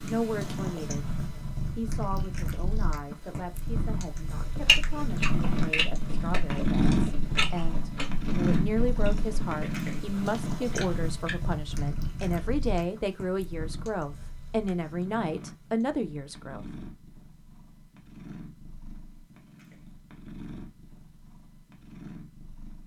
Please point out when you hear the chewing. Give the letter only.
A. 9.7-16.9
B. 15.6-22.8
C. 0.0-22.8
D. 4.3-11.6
D.